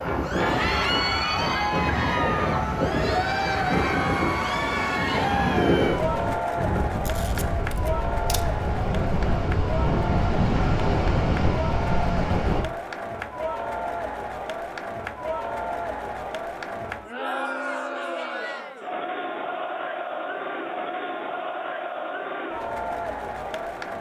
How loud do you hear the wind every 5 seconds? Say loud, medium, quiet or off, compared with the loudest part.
loud, loud, loud, off, off.